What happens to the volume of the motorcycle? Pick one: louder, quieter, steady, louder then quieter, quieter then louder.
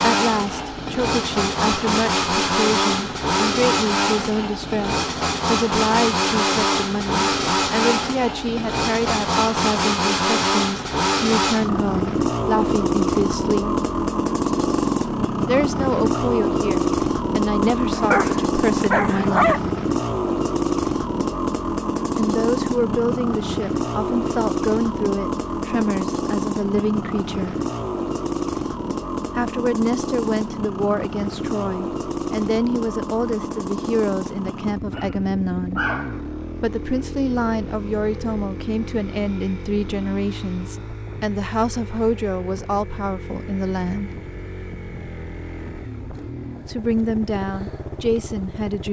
quieter.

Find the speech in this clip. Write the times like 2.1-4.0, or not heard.
0.0-13.8, 15.4-19.6, 22.1-27.6, 29.4-35.9, 36.6-44.1, 46.6-48.8.